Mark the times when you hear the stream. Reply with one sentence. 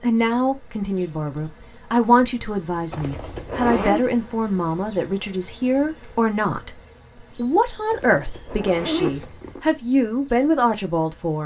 The stream can't be heard in this clip.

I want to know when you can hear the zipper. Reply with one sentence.
The zipper can be heard from 2.9 to 4.0 s and from 7.9 to 9.6 s.